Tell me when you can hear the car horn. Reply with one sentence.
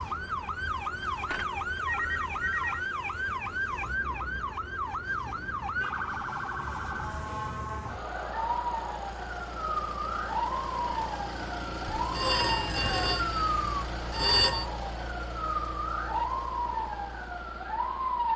The car horn can't be heard in this clip.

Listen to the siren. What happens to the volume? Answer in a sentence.
The loudness of the siren stays about the same.